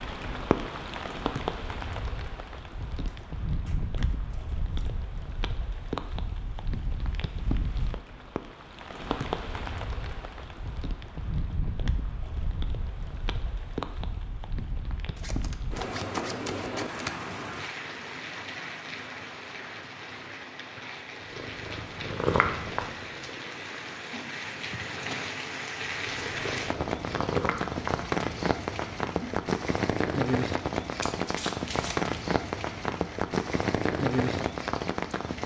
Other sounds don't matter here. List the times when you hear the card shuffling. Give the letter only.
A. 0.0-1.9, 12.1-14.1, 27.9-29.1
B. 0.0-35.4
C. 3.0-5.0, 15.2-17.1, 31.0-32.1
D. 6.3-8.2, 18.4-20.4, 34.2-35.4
C.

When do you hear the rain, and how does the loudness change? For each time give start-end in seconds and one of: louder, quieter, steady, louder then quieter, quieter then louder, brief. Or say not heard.
0.0-35.4 louder.